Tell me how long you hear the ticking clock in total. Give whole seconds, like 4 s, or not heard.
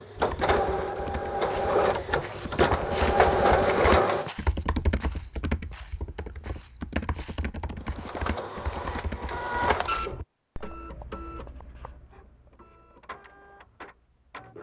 not heard.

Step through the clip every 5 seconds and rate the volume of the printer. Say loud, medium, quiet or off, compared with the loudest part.
loud, medium, quiet.